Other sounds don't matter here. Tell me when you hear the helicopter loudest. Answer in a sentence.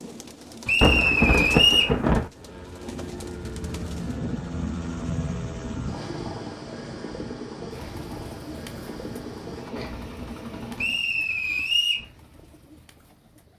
The volume of the helicopter peaks at 5 seconds.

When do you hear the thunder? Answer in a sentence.
The thunder can be heard from 0.8 to 2.3 s.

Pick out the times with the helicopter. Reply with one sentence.
The helicopter can be heard from 2.2 to 11.0 s.